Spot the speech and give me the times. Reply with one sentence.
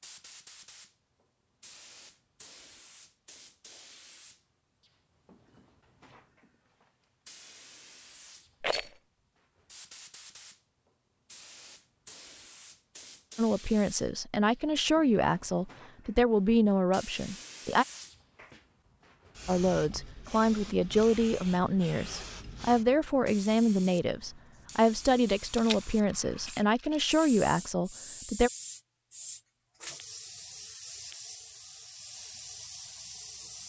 The speech can be heard from 13.3 to 17.9 s and from 19.4 to 28.5 s.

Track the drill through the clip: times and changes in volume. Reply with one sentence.
The drill can't be heard in this clip.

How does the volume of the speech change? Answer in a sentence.
The volume of the speech stays about the same.